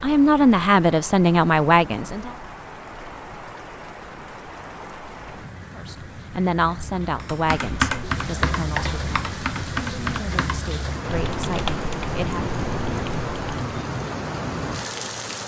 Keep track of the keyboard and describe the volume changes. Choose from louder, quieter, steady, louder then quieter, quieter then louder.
quieter.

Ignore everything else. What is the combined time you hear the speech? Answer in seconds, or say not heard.
9 s.